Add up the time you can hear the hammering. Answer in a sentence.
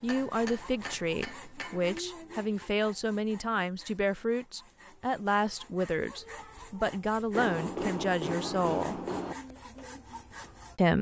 The hammering can be heard for 4 seconds in total.